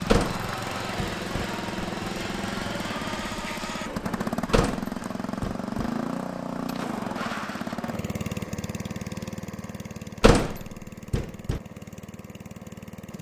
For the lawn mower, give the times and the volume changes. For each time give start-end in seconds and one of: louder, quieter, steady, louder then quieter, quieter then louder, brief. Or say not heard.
0.0-13.1 quieter.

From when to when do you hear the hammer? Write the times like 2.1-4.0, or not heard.
not heard.